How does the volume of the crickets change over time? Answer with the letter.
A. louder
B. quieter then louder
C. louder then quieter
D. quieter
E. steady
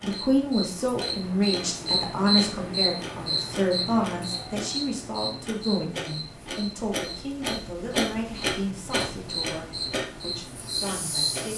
B.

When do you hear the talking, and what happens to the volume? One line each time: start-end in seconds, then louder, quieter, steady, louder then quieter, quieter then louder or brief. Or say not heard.
0.0-11.5 quieter.